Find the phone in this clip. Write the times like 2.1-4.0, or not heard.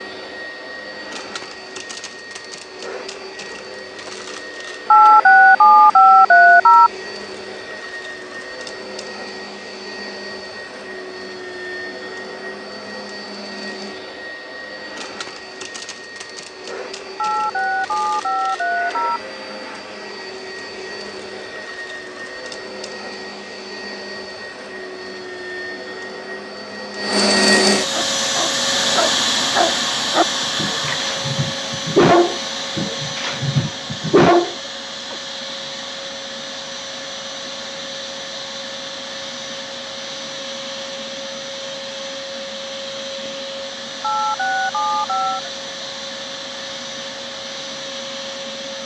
4.9-6.9, 17.1-19.2, 44.0-45.5.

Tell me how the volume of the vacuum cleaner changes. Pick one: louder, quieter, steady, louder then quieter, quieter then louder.
louder then quieter.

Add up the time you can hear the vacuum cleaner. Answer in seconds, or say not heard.
49 s.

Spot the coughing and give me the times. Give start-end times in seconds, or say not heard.
not heard.